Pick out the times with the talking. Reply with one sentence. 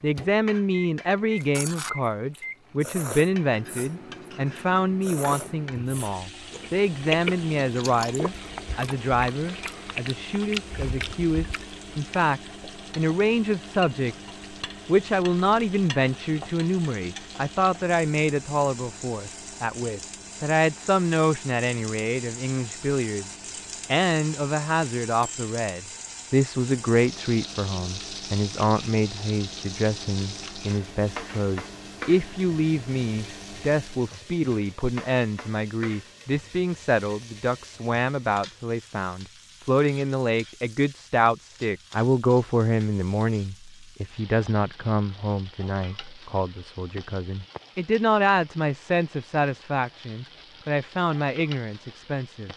The talking can be heard from 0.0 to 52.5 s.